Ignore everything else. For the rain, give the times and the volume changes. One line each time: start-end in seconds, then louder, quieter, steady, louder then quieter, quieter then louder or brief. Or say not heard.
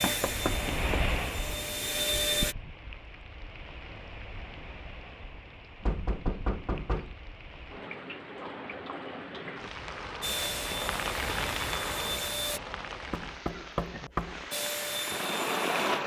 0.1-16.0 quieter then louder.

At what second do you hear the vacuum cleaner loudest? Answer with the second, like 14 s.
2 s.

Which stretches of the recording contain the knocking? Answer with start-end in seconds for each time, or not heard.
0.0-1.0, 5.8-7.2, 13.1-14.4.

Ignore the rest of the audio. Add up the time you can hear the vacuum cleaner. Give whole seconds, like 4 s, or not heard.
6 s.